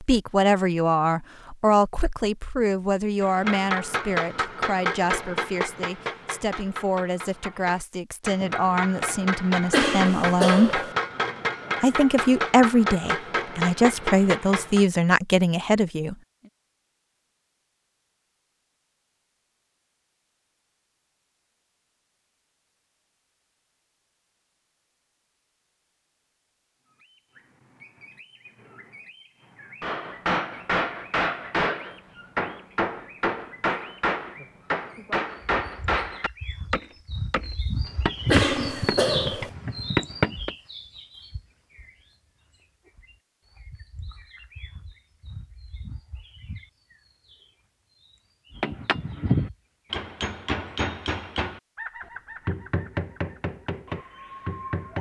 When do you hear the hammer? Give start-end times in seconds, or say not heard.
3.2-14.8, 29.8-40.5, 48.6-51.6, 52.5-54.9.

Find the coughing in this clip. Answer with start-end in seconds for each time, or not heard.
9.7-10.9, 38.3-39.5.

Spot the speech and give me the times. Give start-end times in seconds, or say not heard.
0.0-10.8, 11.8-16.1.